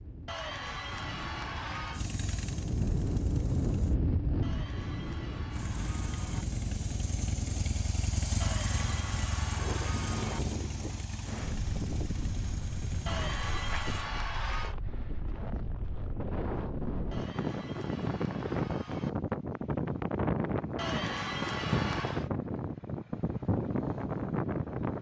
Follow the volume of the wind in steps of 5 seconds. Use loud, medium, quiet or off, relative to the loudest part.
loud, medium, medium, loud, loud.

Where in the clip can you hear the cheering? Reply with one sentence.
You can hear the cheering from 0.2 to 2.0 s, from 4.4 to 6.5 s, from 8.4 to 10.4 s, from 13.1 to 14.8 s, from 17.1 to 19.1 s and from 20.8 to 22.3 s.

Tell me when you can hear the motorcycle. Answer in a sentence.
The motorcycle can be heard from 1.9 to 4.0 s and from 5.5 to 14.1 s.